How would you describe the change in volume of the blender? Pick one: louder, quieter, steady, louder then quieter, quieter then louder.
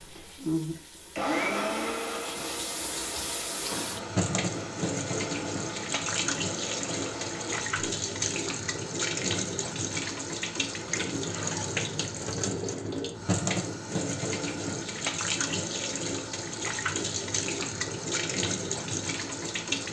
quieter.